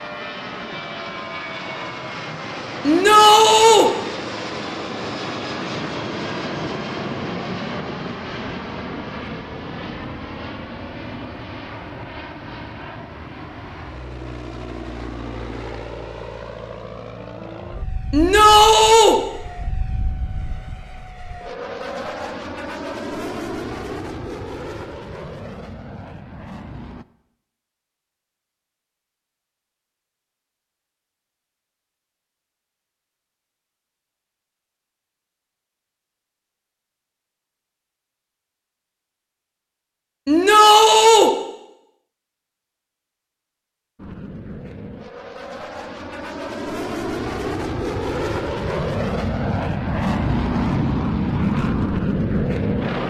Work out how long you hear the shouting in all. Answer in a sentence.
You can hear the shouting for 3 seconds altogether.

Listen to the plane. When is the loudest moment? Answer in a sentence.
The loudest moment of the plane is at 51 seconds.